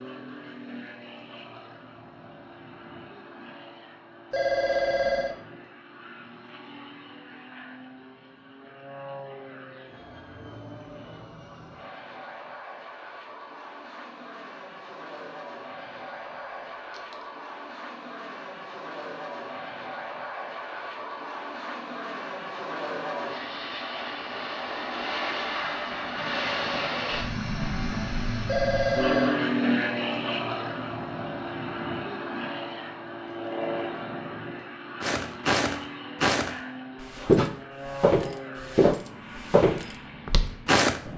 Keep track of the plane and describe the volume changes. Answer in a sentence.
The volume of the plane goes up, then down.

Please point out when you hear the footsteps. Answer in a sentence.
You can hear the footsteps from 35.0 to 41.0 s.